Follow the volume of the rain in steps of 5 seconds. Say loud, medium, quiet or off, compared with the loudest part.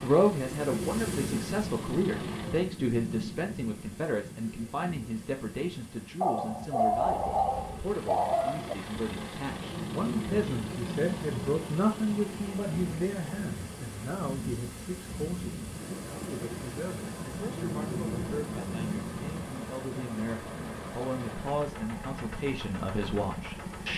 loud, medium, loud, loud, medium.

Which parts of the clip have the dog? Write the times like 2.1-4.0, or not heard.
6.2-8.8.